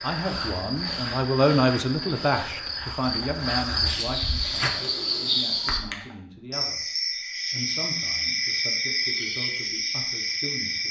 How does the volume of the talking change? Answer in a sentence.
The volume of the talking goes down.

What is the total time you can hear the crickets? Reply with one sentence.
The crickets can be heard for 11 seconds in total.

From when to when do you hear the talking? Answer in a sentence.
You can hear the talking from 0.0 to 6.8 s and from 7.5 to 10.8 s.